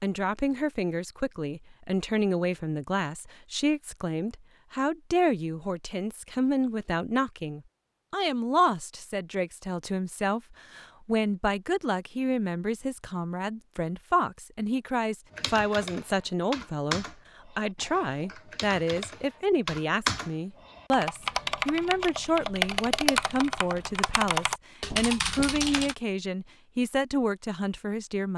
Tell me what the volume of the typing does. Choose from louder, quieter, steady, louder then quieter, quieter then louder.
quieter then louder.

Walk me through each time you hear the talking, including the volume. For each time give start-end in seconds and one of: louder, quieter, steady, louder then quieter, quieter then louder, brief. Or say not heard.
0.0-28.3 steady.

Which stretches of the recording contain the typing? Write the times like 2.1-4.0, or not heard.
15.3-25.9.